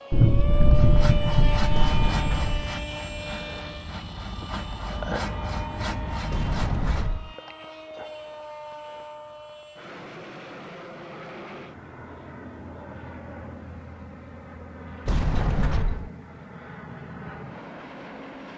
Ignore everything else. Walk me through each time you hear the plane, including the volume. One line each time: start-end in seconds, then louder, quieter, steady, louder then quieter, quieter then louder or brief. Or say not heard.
0.0-18.5 quieter.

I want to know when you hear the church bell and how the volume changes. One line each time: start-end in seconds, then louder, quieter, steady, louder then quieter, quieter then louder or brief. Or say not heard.
not heard.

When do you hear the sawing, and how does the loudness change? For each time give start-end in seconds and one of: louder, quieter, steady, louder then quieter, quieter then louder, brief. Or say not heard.
0.7-7.2 quieter then louder.